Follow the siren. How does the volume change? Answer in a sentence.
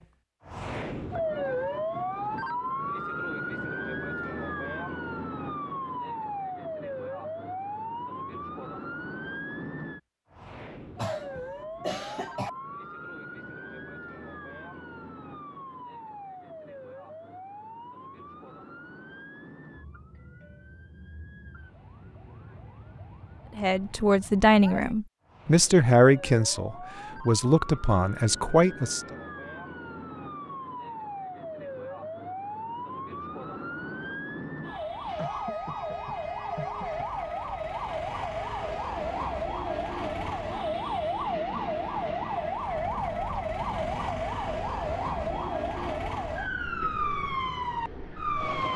The volume of the siren goes down, then up.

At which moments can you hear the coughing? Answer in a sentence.
The coughing can be heard from 10.9 to 12.5 s and from 35.1 to 37.0 s.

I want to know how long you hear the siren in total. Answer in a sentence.
You can hear the siren for 49 seconds altogether.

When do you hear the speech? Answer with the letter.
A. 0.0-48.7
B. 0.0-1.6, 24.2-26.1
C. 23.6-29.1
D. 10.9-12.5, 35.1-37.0
C.